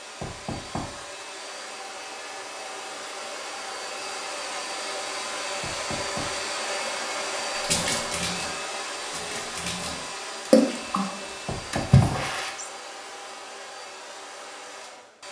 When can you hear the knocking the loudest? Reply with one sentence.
The loudest moment of the knocking is at 12 seconds.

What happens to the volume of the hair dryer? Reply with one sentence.
The loudness of the hair dryer goes up, then down.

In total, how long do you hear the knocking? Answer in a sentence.
The knocking can be heard for 3 seconds in total.